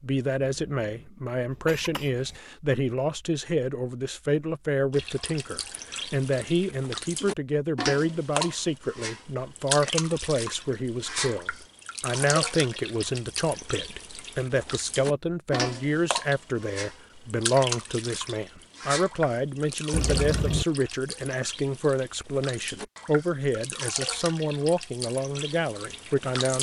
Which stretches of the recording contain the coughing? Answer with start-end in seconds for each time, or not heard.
0.5-2.4, 19.9-20.6.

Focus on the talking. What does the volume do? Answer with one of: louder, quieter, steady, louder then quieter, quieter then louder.
steady.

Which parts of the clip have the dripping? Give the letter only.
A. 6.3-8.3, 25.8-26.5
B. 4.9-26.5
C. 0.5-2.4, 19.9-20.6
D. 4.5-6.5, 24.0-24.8
B.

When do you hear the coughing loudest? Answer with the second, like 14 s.
20 s.